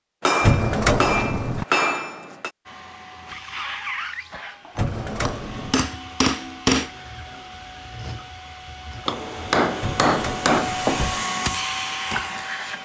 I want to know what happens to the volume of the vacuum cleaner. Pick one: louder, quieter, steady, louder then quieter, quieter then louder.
quieter then louder.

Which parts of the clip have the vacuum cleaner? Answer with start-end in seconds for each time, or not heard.
2.6-12.8.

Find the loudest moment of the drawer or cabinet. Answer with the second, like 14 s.
1 s.